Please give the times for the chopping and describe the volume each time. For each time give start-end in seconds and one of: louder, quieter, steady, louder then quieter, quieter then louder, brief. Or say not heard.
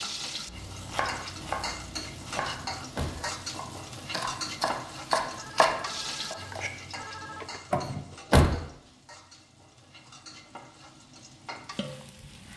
0.5-6.7 quieter then louder.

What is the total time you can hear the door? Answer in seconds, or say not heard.
2 s.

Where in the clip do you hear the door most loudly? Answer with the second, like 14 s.
8 s.